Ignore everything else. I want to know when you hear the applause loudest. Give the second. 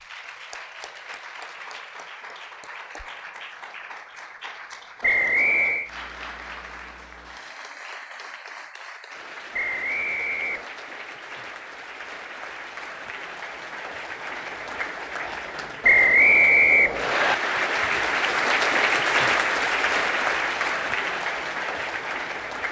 19 s.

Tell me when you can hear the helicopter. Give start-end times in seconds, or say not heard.
not heard.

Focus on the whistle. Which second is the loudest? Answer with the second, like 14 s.
16 s.